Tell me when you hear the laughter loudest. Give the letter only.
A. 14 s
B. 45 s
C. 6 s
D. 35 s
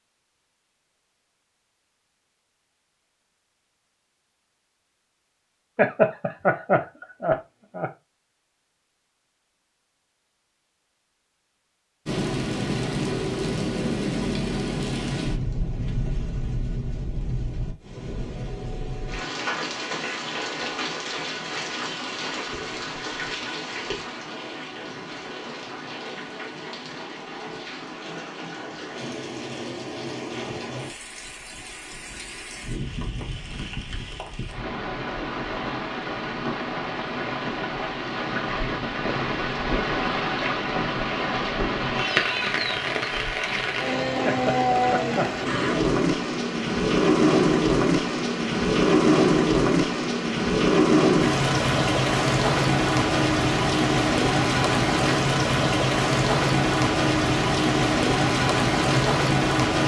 C.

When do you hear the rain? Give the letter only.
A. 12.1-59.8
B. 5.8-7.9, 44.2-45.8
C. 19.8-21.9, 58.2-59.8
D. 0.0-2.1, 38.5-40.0
A.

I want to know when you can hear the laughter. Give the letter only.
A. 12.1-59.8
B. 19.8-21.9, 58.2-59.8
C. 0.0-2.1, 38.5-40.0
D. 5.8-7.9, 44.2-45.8
D.